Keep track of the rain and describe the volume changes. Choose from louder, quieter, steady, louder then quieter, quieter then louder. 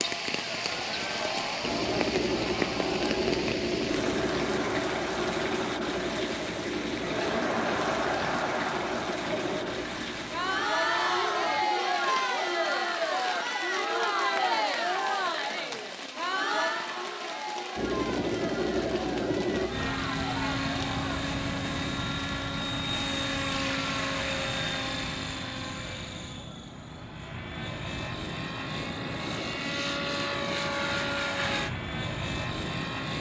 quieter.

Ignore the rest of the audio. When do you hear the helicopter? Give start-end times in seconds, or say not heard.
1.6-10.7, 17.8-33.1.